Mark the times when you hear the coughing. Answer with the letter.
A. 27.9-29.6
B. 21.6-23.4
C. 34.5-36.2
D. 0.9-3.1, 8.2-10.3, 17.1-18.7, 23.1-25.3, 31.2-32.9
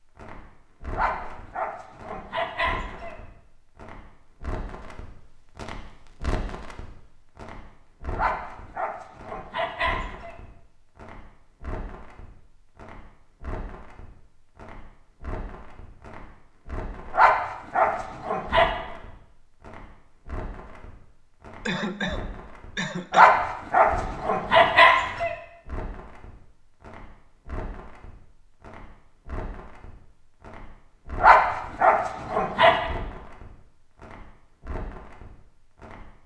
B.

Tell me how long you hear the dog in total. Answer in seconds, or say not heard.
10 s.